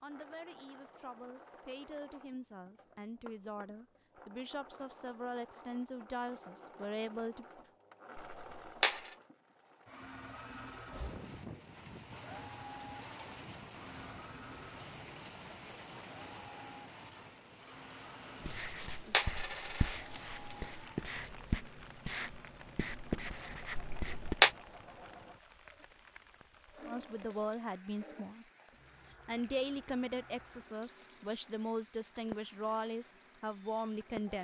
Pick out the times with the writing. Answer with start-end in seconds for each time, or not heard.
18.4-24.4.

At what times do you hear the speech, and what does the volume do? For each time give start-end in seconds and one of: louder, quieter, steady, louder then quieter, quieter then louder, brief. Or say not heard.
0.0-7.5 louder
26.9-28.4 brief
29.1-34.3 quieter then louder.